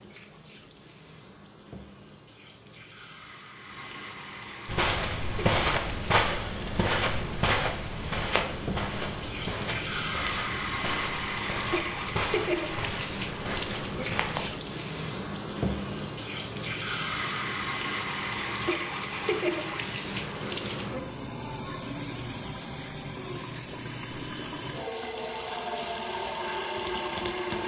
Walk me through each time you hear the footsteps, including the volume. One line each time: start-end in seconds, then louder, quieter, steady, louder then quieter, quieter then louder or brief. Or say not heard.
4.7-14.5 quieter.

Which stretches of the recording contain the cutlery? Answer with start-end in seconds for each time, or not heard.
not heard.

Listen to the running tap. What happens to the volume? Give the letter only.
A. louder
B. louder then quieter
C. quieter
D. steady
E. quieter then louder
A.